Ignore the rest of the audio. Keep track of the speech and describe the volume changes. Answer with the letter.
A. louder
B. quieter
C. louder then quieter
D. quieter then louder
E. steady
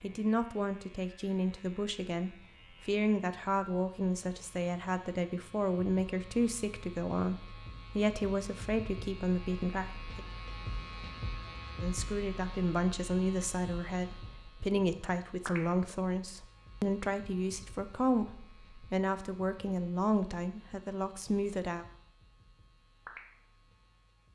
E.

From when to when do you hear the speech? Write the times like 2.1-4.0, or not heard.
0.0-10.2, 11.8-21.9.